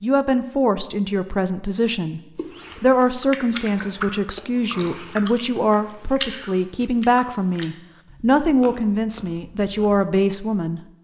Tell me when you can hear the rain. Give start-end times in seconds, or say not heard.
not heard.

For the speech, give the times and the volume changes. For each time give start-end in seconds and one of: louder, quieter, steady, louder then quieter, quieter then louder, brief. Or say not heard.
0.0-10.8 steady.